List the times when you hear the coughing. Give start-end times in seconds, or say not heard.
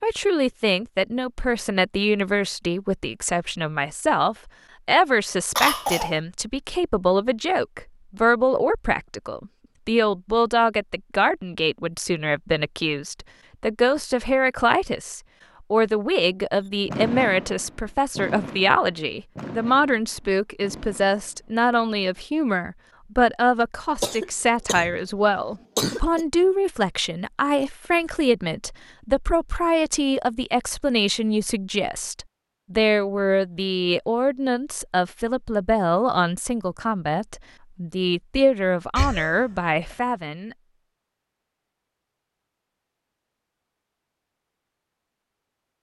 5.5-6.2, 24.0-24.9, 25.8-26.2, 39.0-40.0.